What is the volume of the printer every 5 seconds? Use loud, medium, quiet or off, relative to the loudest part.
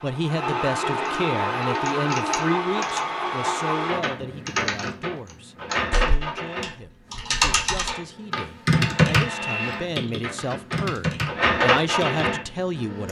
loud, medium, loud.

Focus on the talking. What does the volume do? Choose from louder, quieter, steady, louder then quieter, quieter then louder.
quieter then louder.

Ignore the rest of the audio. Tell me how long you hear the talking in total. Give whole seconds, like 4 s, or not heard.
13 s.